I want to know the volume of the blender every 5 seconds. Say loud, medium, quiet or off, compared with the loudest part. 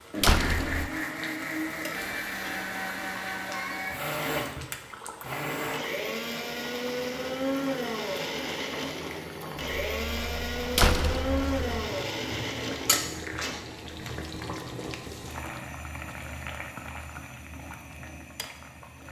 loud, loud, loud, off.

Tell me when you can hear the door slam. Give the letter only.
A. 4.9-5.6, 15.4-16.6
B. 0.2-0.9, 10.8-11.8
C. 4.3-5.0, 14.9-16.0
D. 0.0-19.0
B.